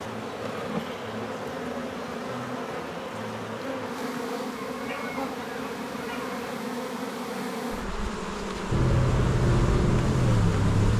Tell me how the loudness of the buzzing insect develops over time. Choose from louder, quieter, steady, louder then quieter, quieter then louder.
steady.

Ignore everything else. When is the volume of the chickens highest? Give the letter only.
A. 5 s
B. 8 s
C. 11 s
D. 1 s
A.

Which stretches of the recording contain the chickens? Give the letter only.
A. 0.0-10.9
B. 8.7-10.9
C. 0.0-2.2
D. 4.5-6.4
D.